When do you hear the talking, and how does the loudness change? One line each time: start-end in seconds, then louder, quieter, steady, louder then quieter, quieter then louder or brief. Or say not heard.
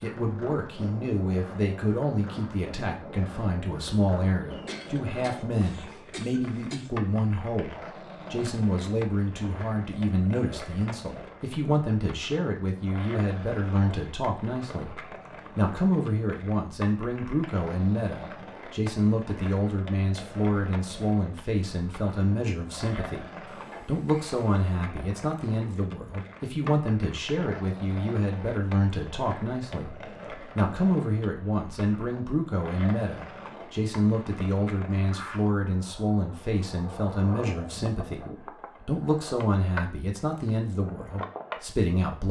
0.0-42.2 steady.